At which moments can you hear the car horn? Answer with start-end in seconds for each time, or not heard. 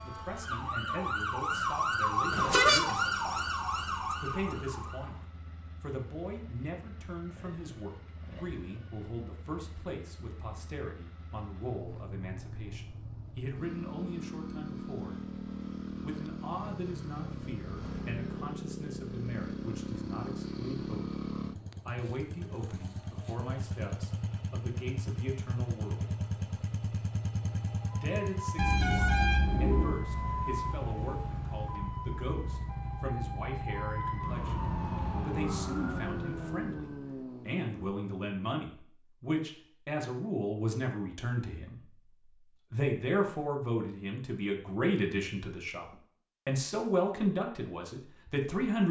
2.3-3.0, 28.6-29.9.